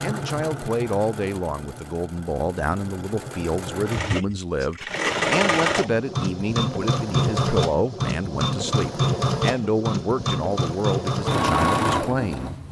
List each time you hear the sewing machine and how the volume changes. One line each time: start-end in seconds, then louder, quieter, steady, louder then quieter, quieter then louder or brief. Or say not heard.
0.0-12.6 louder.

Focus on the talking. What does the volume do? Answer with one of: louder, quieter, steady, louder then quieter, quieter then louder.
steady.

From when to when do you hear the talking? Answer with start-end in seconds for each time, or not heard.
0.0-12.6.